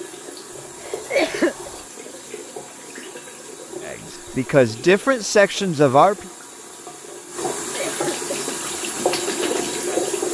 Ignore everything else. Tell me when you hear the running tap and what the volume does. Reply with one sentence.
The running tap can be heard from 0.0 to 10.3 s, getting louder.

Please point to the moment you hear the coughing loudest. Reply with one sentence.
The loudest moment of the coughing is at 1 second.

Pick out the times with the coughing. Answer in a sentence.
The coughing can be heard from 0.8 to 1.7 s and from 7.6 to 8.6 s.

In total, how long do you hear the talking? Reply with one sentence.
You can hear the talking for 2 seconds altogether.